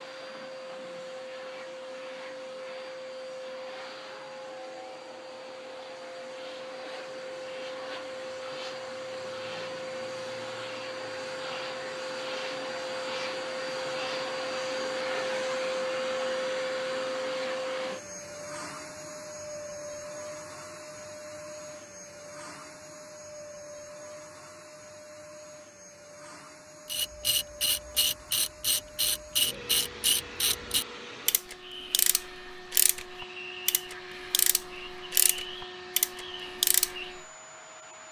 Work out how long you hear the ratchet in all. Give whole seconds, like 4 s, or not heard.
10 s.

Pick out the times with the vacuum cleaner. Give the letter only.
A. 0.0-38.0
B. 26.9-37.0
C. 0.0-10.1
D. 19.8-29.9
A.